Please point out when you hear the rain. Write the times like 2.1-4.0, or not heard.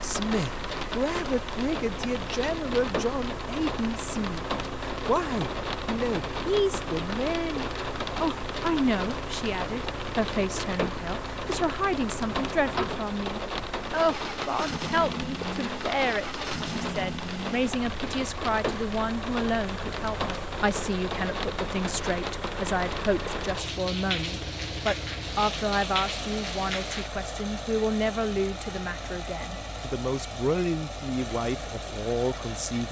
0.0-27.1.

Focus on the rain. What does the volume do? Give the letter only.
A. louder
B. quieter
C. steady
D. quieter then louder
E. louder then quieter
C.